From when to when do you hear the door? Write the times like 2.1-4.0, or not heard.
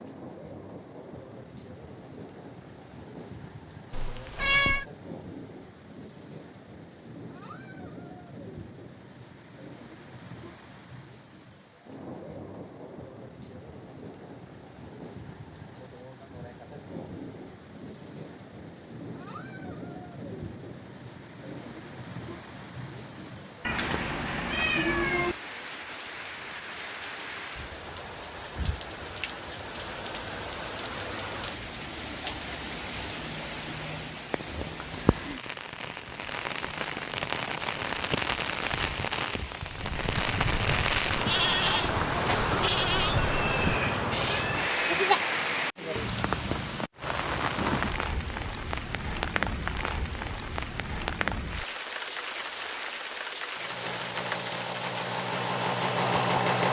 not heard.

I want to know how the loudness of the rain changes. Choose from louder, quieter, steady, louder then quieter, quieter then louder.
louder.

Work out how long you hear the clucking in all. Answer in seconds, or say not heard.
not heard.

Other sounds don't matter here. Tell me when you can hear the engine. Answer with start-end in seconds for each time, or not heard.
53.5-56.6.